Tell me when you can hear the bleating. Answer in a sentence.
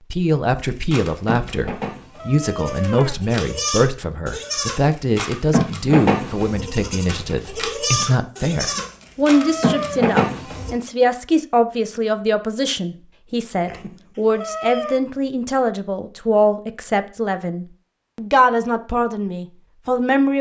You can hear the bleating from 0.9 to 10.8 s.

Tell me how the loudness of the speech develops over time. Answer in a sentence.
The loudness of the speech stays about the same.